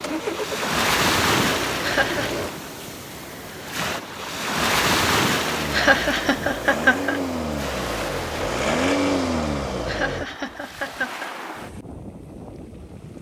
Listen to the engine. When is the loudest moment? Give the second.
9 s.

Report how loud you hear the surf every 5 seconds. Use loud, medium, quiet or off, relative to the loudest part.
loud, loud, quiet.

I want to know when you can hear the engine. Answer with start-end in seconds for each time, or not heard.
0.0-2.5, 5.4-10.2.